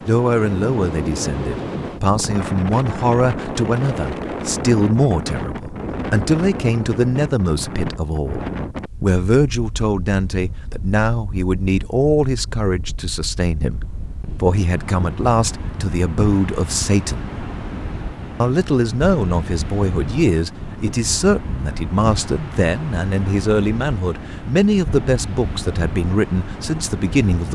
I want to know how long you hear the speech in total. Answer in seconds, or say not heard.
26 s.